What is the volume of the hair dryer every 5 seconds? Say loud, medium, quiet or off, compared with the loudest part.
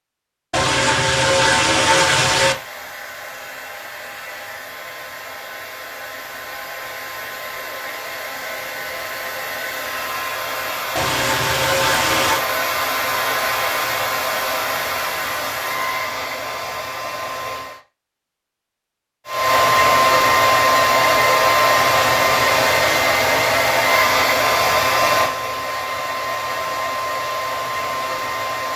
quiet, quiet, medium, medium, loud, medium.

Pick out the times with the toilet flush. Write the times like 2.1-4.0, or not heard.
0.5-2.5, 10.9-12.4, 21.8-22.9.